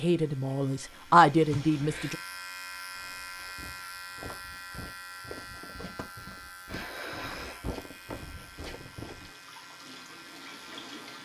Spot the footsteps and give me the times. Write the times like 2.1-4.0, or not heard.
2.9-9.3.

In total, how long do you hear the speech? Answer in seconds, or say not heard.
2 s.